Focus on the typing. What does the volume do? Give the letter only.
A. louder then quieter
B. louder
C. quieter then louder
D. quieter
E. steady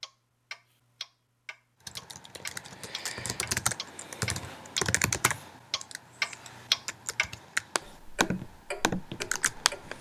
C.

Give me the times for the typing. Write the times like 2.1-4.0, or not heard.
1.9-9.9.